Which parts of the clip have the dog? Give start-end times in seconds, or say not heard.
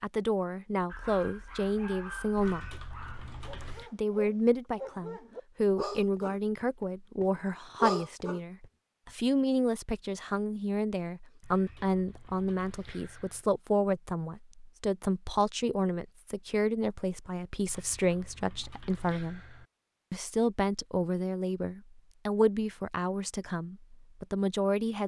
0.9-8.7.